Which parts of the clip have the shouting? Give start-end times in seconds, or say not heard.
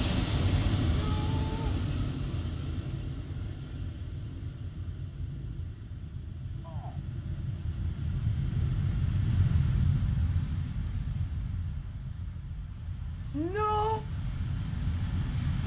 1.0-1.8, 6.6-7.0, 13.3-14.0.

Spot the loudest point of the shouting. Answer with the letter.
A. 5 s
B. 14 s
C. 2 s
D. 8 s
B.